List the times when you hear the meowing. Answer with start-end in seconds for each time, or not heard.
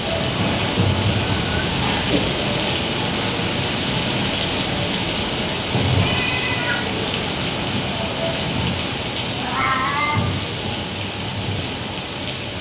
1.2-2.4, 6.0-6.9, 9.3-10.3.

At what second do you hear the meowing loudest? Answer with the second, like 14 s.
10 s.